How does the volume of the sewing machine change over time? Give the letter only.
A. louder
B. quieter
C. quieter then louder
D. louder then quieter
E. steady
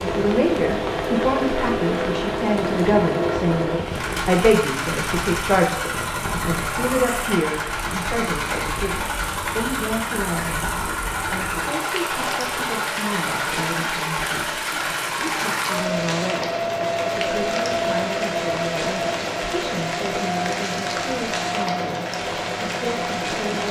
E.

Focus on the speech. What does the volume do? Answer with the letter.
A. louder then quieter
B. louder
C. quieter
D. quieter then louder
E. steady
C.